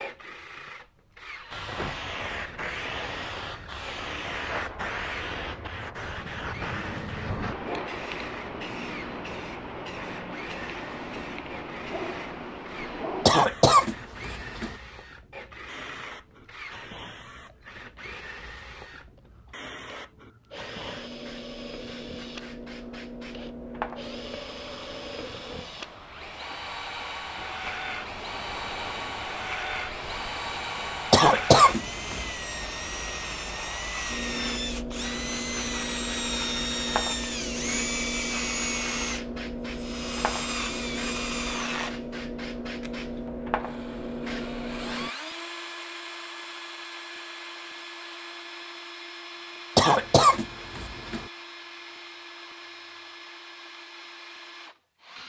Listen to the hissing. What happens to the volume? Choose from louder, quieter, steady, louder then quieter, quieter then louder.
quieter then louder.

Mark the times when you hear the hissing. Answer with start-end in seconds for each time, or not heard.
1.5-45.1.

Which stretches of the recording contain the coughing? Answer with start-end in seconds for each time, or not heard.
13.2-14.8, 31.1-32.3, 49.8-51.2.